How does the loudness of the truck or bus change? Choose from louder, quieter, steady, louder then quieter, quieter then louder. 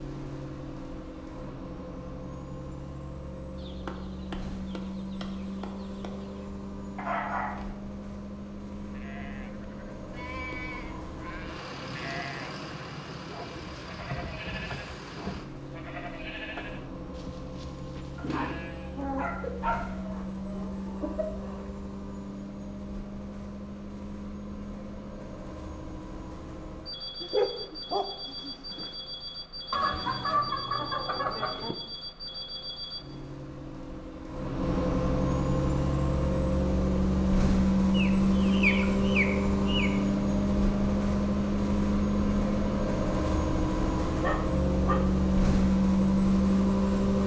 louder.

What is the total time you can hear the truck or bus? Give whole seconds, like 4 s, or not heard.
47 s.